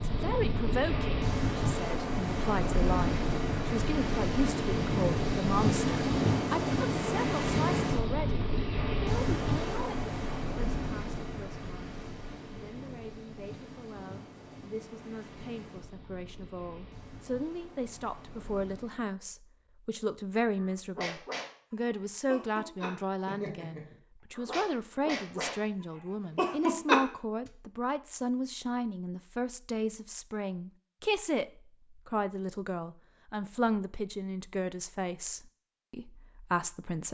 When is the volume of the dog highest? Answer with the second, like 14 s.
27 s.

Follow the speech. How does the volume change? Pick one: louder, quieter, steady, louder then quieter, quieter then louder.
quieter then louder.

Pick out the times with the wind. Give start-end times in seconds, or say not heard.
0.0-19.1.